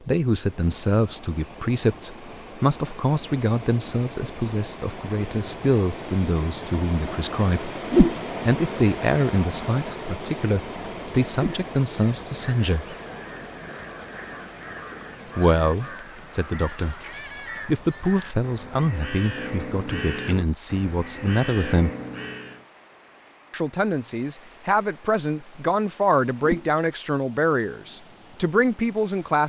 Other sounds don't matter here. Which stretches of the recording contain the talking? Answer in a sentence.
You can hear the talking from 0.0 to 7.7 s, from 8.4 to 12.9 s, from 15.3 to 16.9 s, from 17.6 to 21.9 s and from 23.5 to 29.4 s.